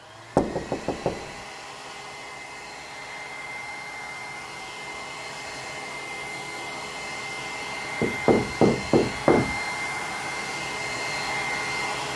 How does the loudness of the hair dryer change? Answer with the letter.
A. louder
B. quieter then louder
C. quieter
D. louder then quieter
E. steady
A.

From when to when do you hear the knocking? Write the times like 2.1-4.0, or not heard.
0.3-1.4, 8.0-9.6.